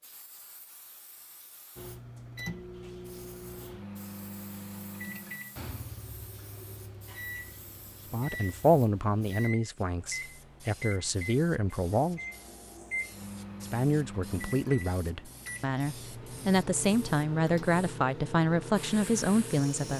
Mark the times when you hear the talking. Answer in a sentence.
The talking can be heard from 8.1 to 12.2 s and from 13.6 to 19.9 s.